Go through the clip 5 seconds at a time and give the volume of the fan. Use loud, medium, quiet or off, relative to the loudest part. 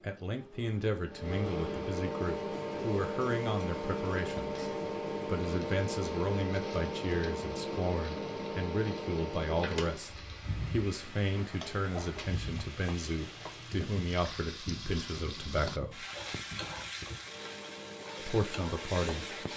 loud, loud, medium, medium.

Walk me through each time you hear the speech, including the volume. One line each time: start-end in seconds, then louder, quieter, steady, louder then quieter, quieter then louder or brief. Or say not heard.
0.0-16.1 steady
18.2-19.4 brief.